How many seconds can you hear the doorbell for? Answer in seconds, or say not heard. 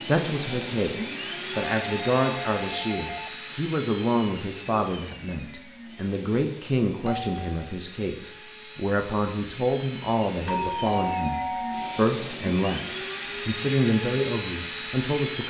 4 s.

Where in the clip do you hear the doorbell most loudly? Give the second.
11 s.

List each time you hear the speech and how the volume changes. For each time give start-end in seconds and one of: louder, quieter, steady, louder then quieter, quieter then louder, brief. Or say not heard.
0.0-15.4 steady.